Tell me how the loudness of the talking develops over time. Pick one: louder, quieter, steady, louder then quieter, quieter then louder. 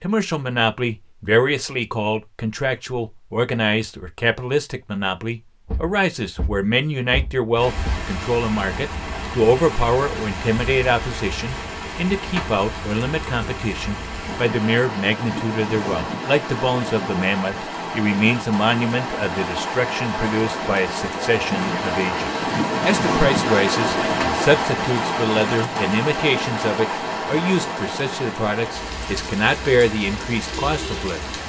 steady.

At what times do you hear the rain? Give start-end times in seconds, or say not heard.
7.5-31.4.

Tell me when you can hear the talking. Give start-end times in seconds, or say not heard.
0.0-31.2.